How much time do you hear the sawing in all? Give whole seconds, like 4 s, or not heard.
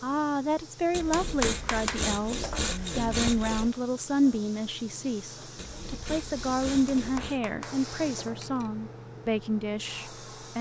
5 s.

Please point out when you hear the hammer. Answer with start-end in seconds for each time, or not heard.
0.9-2.6, 6.7-8.7.